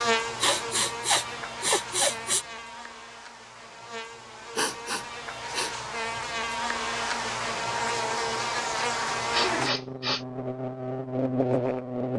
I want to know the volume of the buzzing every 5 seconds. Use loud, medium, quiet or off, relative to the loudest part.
medium, loud, loud.